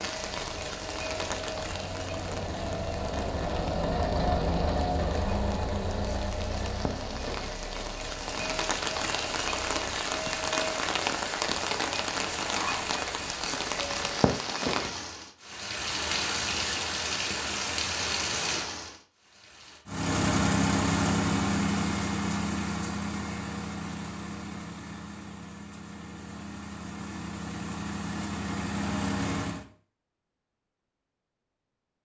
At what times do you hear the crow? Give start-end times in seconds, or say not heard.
not heard.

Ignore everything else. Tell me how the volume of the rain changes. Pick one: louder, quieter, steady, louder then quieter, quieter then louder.
louder.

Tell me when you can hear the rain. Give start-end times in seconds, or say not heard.
0.0-19.9.